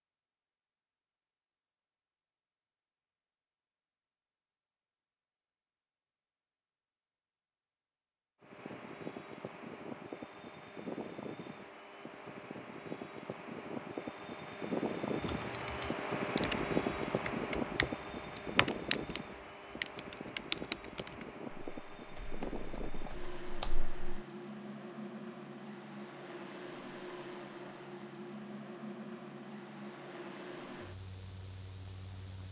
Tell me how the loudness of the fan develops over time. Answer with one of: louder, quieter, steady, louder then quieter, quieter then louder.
louder then quieter.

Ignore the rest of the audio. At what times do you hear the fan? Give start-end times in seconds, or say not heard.
8.4-32.4.